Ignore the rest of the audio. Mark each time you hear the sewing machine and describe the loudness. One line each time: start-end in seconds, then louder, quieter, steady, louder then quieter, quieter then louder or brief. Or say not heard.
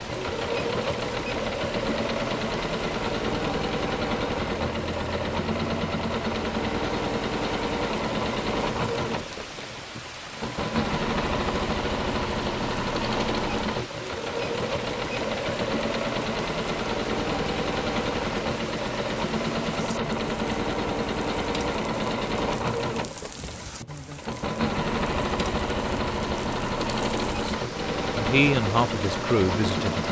0.0-30.0 steady.